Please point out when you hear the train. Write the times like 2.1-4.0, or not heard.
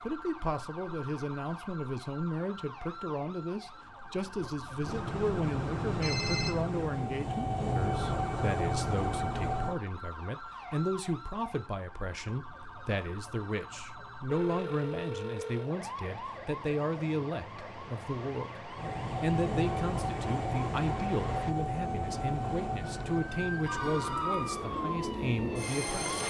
4.8-9.8, 18.8-26.2.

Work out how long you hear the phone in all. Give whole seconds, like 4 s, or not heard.
3 s.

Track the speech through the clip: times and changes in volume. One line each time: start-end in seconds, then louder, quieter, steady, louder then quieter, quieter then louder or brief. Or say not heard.
0.0-26.2 steady.